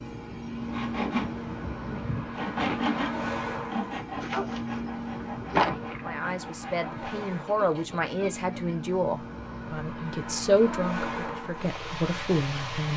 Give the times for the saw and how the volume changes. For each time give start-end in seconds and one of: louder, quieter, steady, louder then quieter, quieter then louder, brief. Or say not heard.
0.6-8.8 quieter.